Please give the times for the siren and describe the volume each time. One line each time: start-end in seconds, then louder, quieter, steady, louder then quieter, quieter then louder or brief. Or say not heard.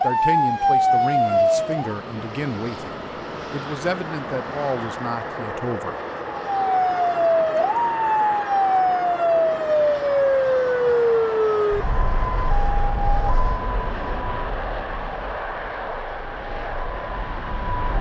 0.0-1.9 brief
6.3-17.9 quieter.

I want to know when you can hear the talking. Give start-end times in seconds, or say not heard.
0.0-6.0.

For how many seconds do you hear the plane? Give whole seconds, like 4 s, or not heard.
18 s.